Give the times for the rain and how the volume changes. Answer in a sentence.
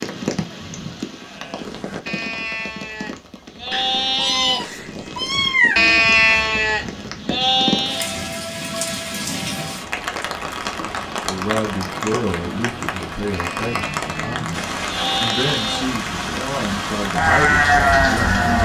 The rain can be heard from 0.0 to 18.6 s, getting louder.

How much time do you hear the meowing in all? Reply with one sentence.
The meowing can be heard for 2 seconds in total.